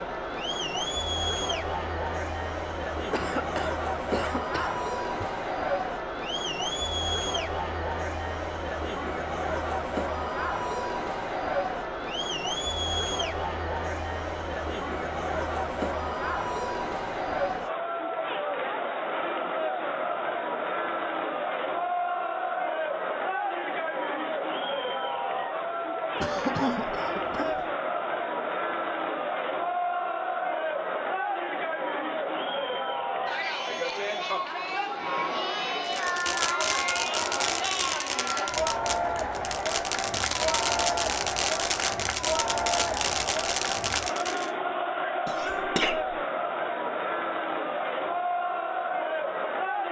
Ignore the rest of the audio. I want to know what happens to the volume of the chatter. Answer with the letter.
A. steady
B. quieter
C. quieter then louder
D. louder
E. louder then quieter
A.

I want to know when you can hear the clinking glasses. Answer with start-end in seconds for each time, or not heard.
not heard.